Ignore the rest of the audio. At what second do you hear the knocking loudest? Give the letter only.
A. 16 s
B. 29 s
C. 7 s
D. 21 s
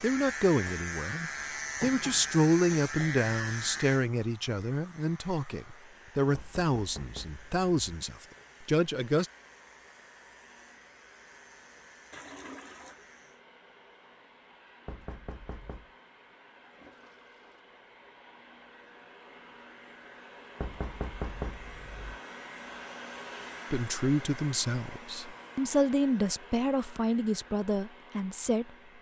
D.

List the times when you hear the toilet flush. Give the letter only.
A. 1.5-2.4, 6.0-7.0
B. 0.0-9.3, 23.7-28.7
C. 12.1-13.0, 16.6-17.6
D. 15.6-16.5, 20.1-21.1
C.